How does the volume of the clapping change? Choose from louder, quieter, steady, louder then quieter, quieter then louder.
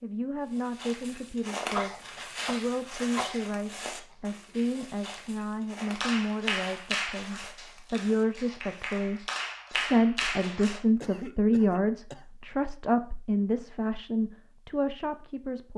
quieter then louder.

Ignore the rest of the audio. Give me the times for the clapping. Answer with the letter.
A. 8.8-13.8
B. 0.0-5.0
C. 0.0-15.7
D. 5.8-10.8
D.